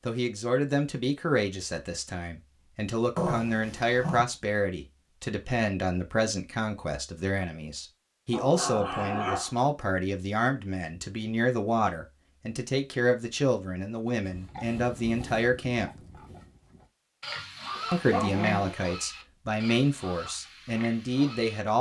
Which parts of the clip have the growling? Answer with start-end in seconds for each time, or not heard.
3.1-4.2, 8.3-9.6, 17.8-18.8.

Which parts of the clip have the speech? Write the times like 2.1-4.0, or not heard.
0.1-16.1, 17.9-21.7.